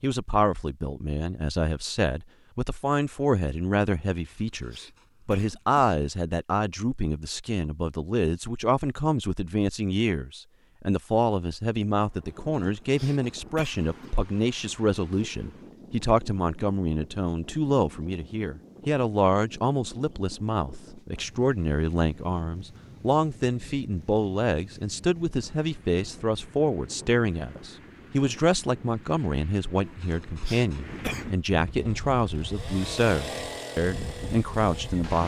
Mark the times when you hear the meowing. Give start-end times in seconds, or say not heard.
not heard.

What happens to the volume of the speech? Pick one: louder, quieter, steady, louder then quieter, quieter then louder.
steady.